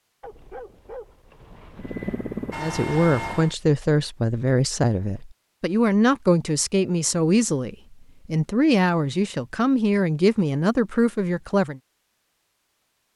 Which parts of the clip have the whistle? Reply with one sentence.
You can't hear the whistle here.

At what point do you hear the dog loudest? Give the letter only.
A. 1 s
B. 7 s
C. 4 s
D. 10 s
A.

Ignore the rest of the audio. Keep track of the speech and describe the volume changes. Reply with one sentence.
The volume of the speech stays about the same.